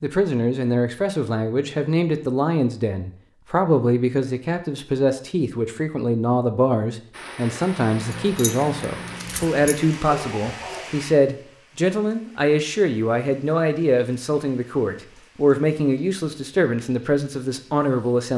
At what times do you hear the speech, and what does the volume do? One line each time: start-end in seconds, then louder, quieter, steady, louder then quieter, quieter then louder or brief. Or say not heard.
0.0-18.3 steady.